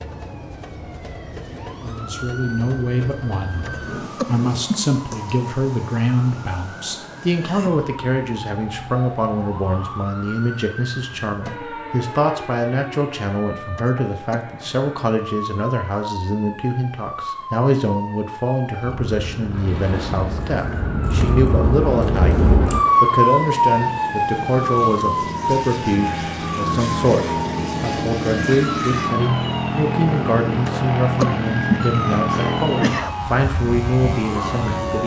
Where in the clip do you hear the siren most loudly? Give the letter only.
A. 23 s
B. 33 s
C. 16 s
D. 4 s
A.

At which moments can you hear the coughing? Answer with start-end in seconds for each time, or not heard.
3.5-5.2, 13.7-14.4, 30.6-33.1.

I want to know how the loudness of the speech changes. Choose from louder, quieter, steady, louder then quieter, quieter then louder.
steady.